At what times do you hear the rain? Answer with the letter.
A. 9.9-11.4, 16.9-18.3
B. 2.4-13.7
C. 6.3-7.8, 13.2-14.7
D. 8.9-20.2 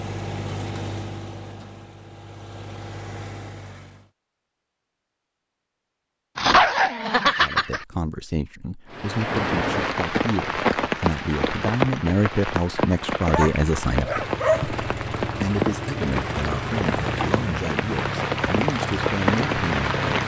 D.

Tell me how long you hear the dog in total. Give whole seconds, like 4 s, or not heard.
3 s.